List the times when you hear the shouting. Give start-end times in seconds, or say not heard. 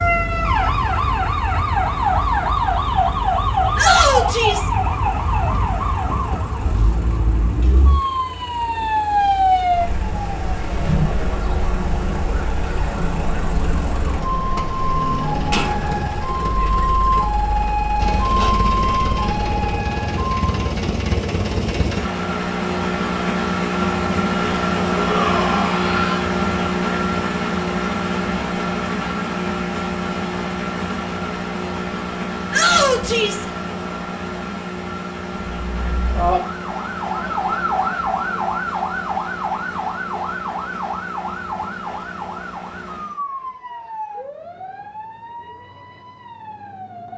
3.8-4.7, 24.9-26.2, 32.5-33.5.